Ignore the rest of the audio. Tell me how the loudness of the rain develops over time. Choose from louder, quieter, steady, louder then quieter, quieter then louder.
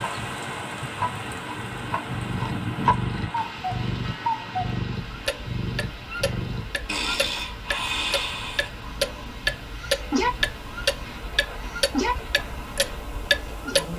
quieter.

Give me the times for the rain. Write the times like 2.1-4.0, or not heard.
0.0-13.9.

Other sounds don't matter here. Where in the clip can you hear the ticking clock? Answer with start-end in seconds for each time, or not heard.
0.0-13.9.